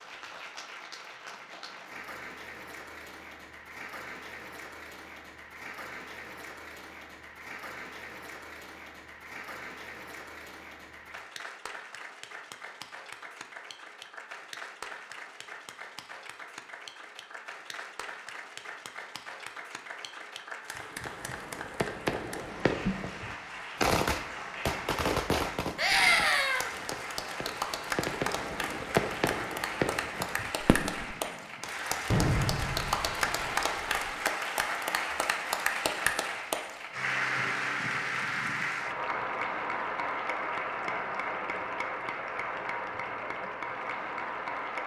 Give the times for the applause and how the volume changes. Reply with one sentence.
You can hear the applause from 0.0 to 44.8 s, getting louder.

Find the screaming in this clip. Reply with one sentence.
You can hear the screaming from 25.8 to 26.7 s.